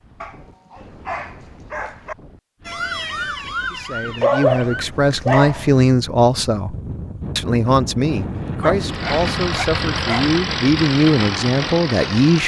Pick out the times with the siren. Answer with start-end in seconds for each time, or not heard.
2.6-4.8.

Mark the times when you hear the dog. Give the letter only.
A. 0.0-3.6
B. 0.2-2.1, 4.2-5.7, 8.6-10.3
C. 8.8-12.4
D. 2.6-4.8
B.